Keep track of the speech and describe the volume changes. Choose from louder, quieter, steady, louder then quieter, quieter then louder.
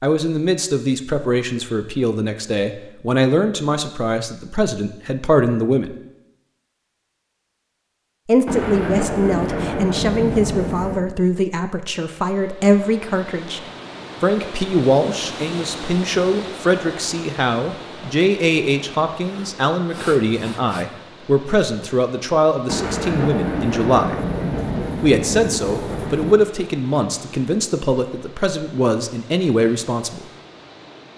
steady.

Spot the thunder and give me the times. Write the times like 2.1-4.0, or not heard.
8.4-11.1, 22.6-26.4.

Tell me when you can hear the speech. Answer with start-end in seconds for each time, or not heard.
0.0-6.0, 8.2-13.6, 14.2-24.1, 25.0-30.2.